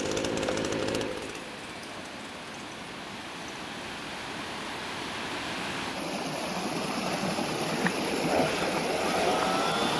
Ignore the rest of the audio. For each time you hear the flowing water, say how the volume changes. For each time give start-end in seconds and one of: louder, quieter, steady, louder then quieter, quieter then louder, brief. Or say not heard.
0.0-9.9 louder.